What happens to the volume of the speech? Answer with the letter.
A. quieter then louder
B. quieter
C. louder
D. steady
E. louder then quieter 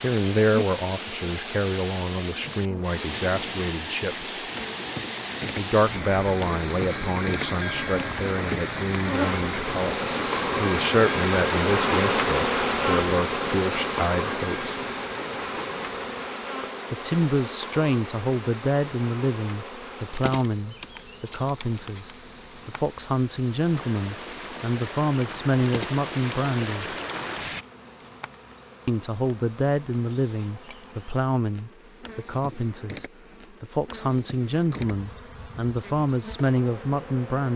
D.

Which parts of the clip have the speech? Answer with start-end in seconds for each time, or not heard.
0.0-4.3, 5.5-9.9, 10.6-14.8, 16.9-26.9, 28.9-37.5.